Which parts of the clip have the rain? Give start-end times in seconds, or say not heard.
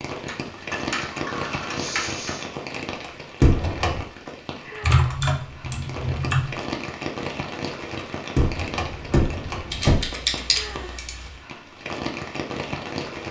0.0-13.2.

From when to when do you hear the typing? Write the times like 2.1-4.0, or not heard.
0.2-2.5, 4.8-6.5, 9.7-11.3.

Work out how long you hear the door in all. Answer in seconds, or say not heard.
3 s.